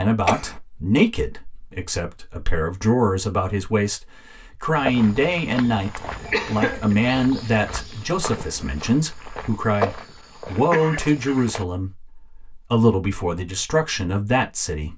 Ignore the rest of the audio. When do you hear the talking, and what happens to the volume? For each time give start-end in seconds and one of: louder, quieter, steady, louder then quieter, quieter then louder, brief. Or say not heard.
0.0-14.9 steady.